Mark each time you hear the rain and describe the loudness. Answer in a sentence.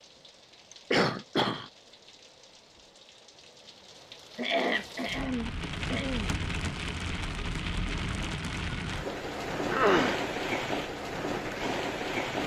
The rain can be heard from 0.0 to 12.4 s, getting louder.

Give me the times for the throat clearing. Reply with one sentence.
You can hear the throat clearing from 0.7 to 1.7 s, from 4.3 to 6.3 s and from 9.7 to 10.2 s.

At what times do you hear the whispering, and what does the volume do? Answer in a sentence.
The whispering can't be heard in this clip.